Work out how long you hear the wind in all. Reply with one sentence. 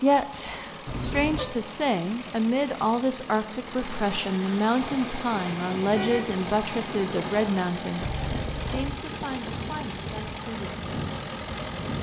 The wind can be heard for 7 seconds in total.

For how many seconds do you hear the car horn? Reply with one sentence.
You can hear the car horn for 2 seconds altogether.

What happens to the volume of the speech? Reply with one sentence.
The volume of the speech goes down.